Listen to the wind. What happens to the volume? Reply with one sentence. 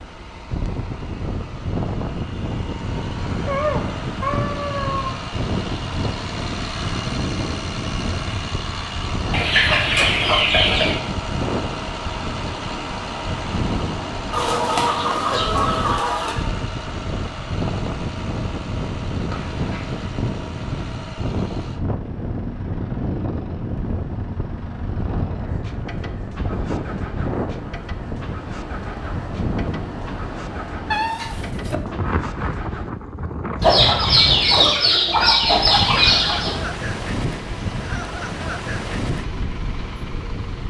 The volume of the wind stays about the same.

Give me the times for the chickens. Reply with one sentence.
The chickens can be heard from 9.3 to 11.0 s, from 14.3 to 16.4 s and from 33.6 to 36.6 s.